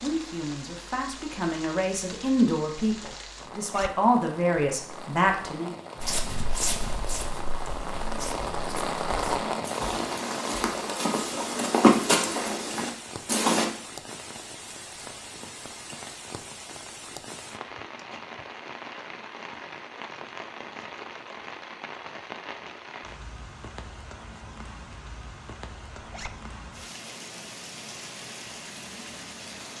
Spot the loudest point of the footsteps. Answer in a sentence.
The loudest moment of the footsteps is at 12 seconds.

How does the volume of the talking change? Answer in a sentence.
The volume of the talking goes up.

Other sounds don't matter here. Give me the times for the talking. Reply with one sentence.
The talking can be heard from 0.0 to 5.8 s.